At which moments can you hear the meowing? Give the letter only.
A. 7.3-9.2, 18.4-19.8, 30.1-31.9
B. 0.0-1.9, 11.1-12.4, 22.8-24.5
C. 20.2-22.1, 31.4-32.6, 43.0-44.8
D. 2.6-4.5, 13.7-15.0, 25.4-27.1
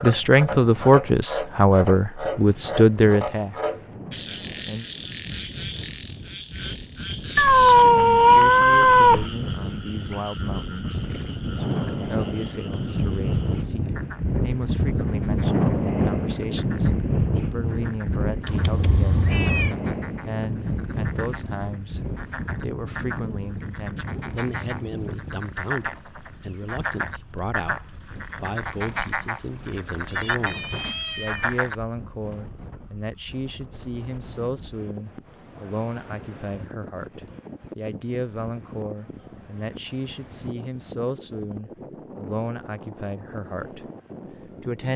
A.